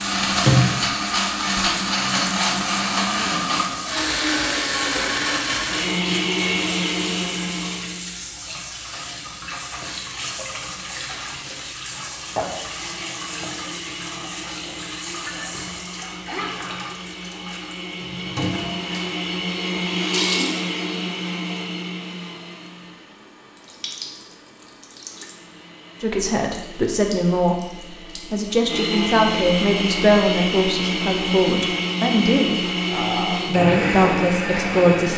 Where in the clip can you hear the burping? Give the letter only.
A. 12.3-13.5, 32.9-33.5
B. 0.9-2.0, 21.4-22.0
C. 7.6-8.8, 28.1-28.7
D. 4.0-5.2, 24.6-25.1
A.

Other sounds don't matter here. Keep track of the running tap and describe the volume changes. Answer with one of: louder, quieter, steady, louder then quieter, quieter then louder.
quieter.